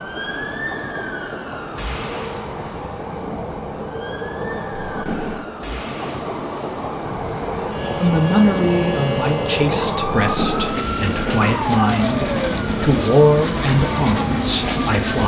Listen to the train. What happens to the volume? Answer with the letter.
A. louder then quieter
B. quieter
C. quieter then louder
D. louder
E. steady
D.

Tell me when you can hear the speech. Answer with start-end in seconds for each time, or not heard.
8.0-15.2.